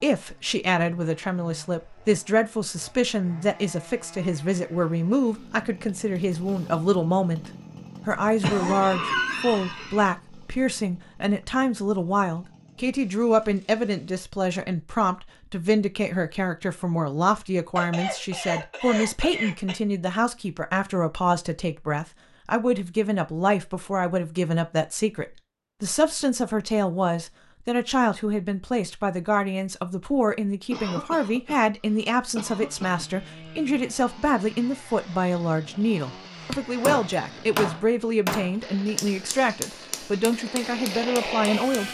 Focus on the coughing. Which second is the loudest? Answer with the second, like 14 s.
9 s.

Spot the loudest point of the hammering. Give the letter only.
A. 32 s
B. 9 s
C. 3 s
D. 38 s
D.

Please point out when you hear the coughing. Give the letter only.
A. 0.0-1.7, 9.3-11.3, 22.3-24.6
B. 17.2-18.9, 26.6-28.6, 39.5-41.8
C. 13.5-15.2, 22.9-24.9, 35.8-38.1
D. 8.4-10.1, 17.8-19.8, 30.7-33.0
D.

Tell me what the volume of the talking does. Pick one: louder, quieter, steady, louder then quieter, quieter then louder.
steady.